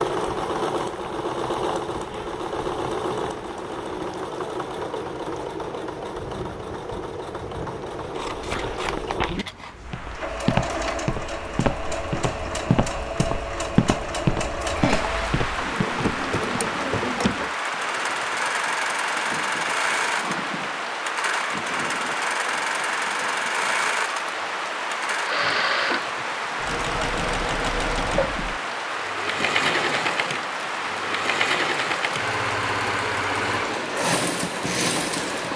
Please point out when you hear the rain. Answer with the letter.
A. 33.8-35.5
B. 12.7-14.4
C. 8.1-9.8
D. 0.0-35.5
D.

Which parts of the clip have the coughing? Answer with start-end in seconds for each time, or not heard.
not heard.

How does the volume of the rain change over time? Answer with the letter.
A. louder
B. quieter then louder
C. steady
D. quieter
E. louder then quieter
A.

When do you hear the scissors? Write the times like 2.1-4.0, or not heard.
8.1-9.8.